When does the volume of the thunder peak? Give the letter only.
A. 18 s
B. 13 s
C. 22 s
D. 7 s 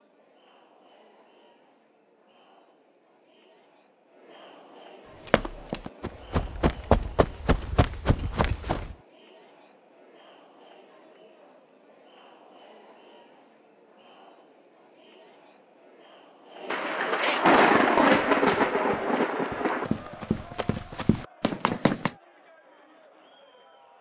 A.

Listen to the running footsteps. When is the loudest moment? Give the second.
7 s.